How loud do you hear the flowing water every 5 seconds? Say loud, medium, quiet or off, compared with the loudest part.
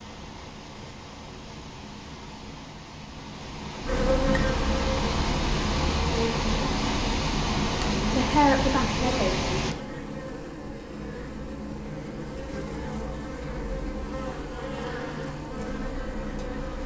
medium, loud, off, off.